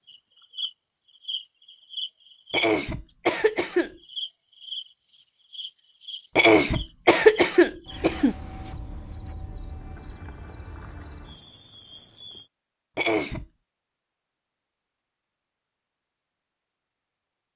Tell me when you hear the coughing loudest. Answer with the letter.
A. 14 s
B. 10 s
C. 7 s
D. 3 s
C.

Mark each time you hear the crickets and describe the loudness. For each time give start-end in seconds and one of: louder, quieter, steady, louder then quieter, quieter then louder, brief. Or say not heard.
0.0-12.5 quieter.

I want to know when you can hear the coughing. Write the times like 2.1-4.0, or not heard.
2.5-3.9, 6.3-8.3, 12.9-13.4.